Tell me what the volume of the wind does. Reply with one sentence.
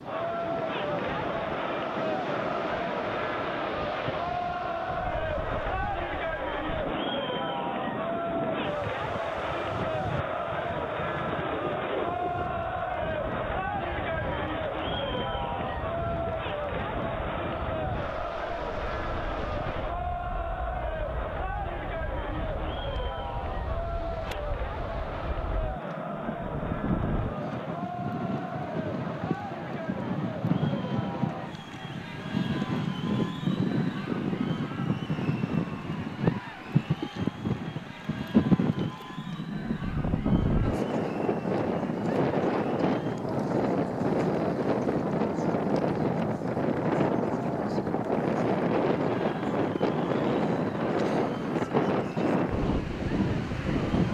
The volume of the wind goes up.